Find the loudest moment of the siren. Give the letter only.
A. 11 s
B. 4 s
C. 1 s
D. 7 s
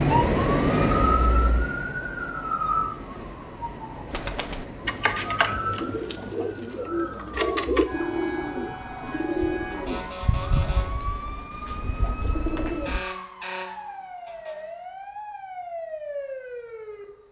C.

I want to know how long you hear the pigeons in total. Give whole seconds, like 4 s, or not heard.
9 s.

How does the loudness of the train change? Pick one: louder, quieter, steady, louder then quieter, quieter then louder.
quieter.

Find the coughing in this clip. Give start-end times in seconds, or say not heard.
not heard.